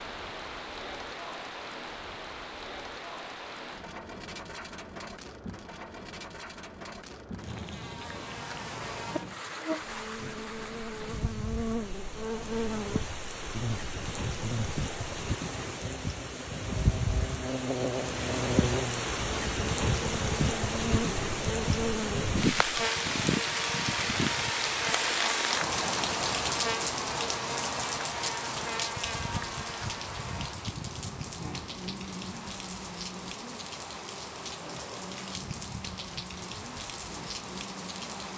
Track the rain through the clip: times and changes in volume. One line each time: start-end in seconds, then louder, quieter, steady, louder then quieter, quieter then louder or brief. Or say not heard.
0.0-38.3 louder then quieter.